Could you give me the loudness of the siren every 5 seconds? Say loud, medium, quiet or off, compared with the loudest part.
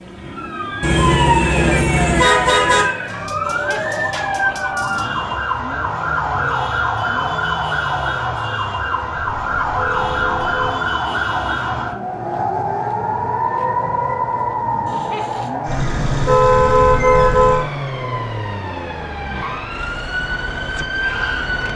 loud, loud, loud, medium, loud.